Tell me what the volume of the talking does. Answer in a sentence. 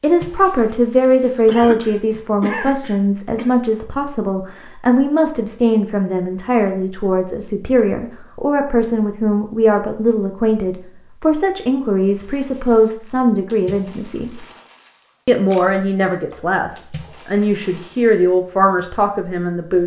The volume of the talking stays about the same.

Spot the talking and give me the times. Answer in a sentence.
The talking can be heard from 0.0 to 14.4 s and from 15.2 to 19.8 s.